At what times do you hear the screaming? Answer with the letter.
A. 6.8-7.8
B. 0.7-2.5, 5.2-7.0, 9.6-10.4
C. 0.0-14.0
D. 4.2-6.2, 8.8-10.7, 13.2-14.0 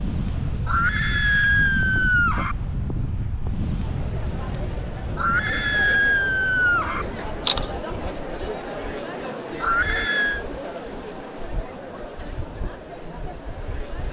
B.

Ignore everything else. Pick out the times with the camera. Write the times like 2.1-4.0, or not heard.
6.8-7.8.